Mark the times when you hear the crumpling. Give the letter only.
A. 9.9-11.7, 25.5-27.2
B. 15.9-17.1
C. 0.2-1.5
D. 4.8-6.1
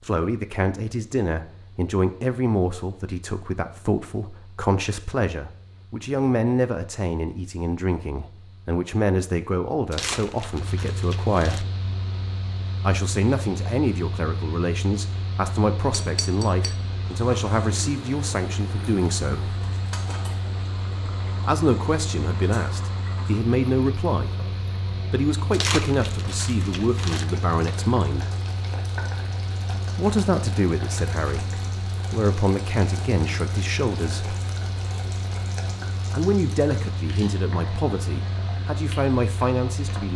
A.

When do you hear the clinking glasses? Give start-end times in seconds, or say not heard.
15.9-17.1.